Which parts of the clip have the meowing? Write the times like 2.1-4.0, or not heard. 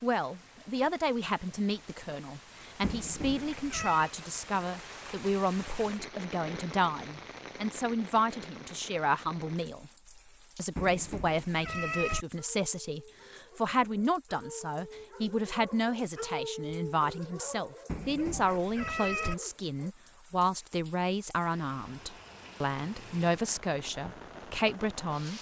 2.8-4.1, 10.8-12.2, 17.9-19.4.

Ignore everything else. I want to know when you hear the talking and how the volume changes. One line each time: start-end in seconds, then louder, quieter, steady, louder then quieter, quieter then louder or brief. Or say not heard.
0.0-9.9 steady
10.6-25.3 steady.